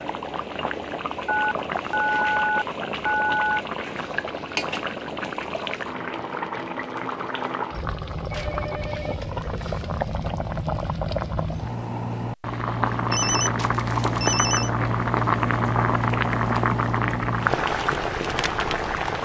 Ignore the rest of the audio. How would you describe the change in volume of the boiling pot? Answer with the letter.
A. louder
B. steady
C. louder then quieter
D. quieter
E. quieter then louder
A.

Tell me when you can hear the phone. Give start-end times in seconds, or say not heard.
1.2-3.6, 8.3-9.8, 13.1-14.7.